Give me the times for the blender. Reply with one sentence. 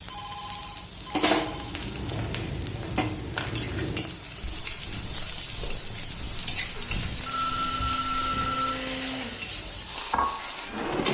The blender can be heard from 6.5 to 10.9 s.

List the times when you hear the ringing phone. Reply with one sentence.
You can hear the ringing phone from 0.1 to 1.8 s and from 7.2 to 8.8 s.